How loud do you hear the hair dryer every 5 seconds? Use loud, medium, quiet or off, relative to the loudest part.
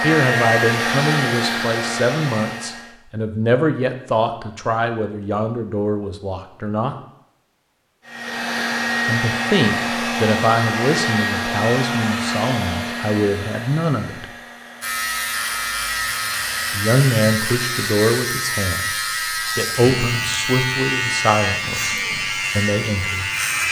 loud, loud, loud, quiet, off.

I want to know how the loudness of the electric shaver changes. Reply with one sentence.
The loudness of the electric shaver stays about the same.